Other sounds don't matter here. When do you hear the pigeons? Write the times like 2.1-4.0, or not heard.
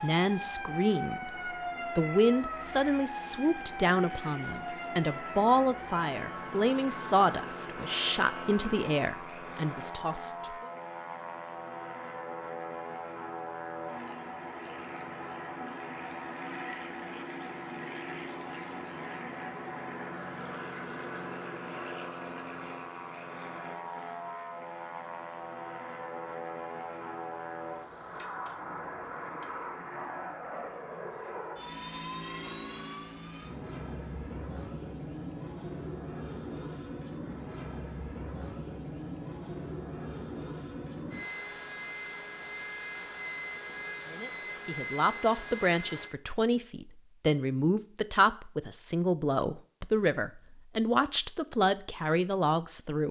not heard.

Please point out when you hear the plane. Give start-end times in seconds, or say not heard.
0.0-46.1.